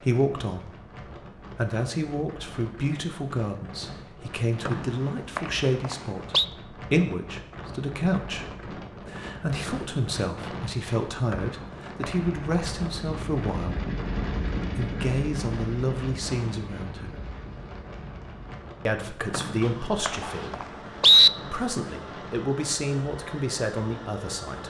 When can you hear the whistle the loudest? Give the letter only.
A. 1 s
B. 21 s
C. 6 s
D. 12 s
B.